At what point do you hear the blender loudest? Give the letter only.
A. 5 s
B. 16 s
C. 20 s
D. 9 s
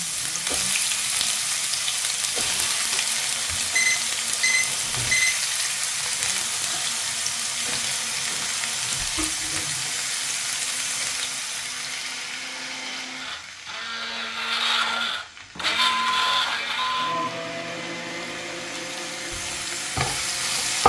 B.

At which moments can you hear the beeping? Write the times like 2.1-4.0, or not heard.
3.8-5.4, 15.7-17.1.